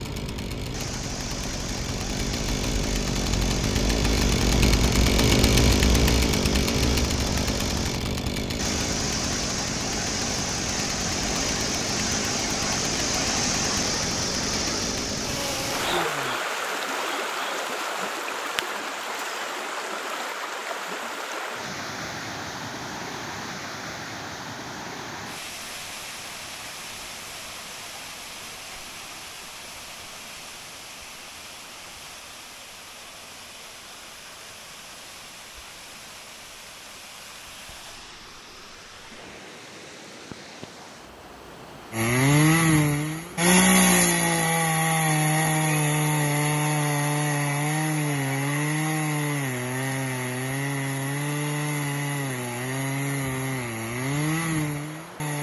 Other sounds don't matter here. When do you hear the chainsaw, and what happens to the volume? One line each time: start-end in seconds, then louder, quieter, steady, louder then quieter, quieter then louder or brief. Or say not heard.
0.0-16.4 louder then quieter
41.9-55.3 quieter.